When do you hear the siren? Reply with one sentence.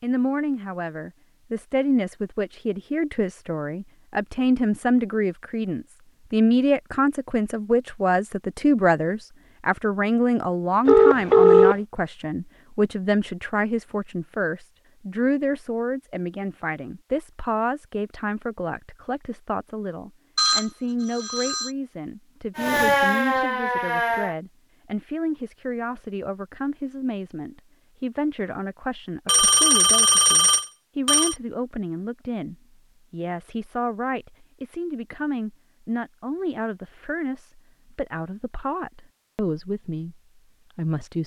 The siren can be heard from 22.6 to 24.4 s.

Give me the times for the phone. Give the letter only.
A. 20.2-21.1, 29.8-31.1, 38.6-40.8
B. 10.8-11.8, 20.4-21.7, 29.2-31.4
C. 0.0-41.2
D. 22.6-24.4
B.